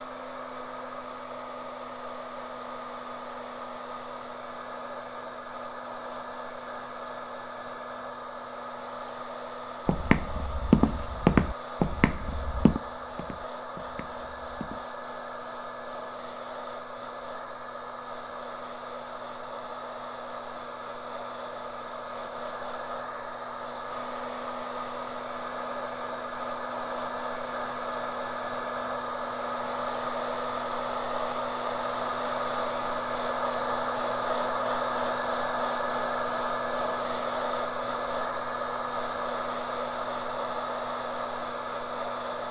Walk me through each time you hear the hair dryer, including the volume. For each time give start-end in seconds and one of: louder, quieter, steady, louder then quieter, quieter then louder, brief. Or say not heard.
0.0-42.4 louder.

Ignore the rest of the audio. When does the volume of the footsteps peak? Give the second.
11 s.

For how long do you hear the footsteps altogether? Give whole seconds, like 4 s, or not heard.
5 s.